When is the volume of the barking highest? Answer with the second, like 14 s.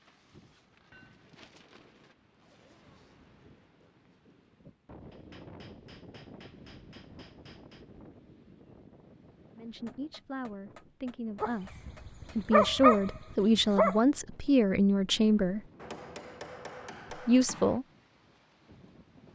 13 s.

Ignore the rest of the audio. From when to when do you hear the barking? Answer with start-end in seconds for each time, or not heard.
11.4-13.9.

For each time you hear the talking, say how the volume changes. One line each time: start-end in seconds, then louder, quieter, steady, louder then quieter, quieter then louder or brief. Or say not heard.
9.6-15.6 louder
17.2-17.9 brief.